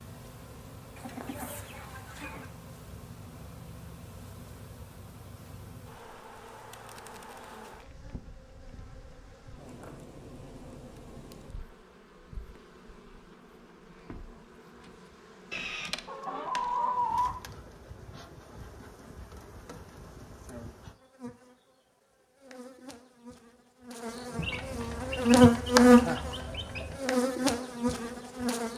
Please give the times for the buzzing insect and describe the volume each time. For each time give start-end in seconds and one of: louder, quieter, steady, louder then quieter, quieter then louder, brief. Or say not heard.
0.0-28.7 louder.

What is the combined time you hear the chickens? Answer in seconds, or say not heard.
6 s.